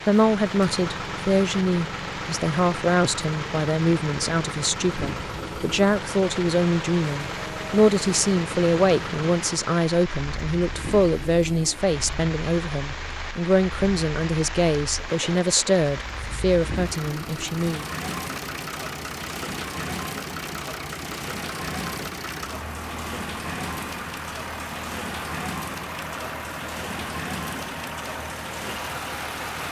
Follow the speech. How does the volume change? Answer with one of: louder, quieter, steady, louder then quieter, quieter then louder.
steady.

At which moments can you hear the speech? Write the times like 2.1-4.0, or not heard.
0.1-17.9.